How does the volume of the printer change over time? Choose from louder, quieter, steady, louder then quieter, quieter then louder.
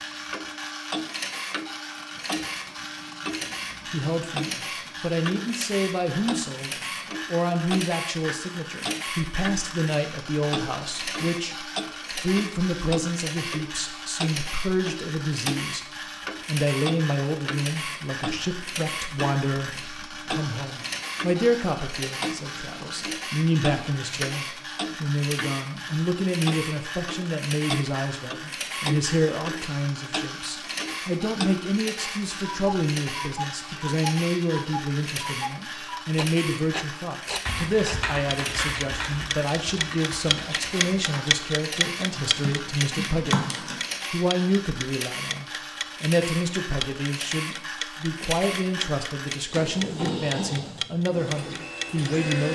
steady.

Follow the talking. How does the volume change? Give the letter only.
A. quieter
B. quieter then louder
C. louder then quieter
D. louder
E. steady
E.